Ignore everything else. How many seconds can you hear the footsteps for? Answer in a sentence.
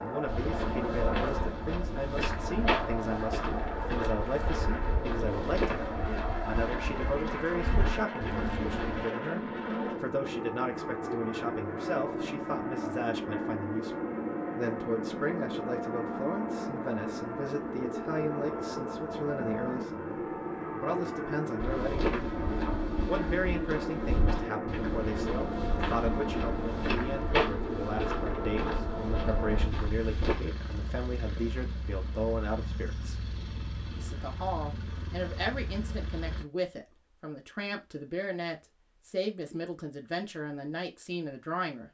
The footsteps can be heard for 18 seconds in total.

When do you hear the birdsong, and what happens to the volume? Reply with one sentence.
You can't hear the birdsong here.